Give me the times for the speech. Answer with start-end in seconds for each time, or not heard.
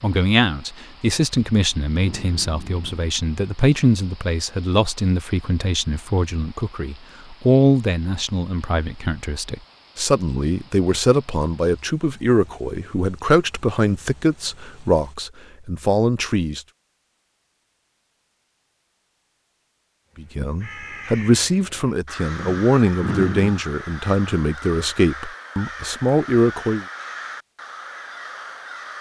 0.0-16.6, 20.1-26.9.